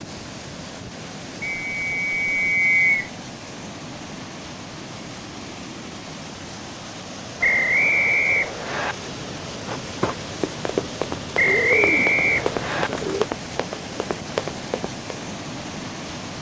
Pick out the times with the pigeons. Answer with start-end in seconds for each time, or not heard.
11.4-13.2.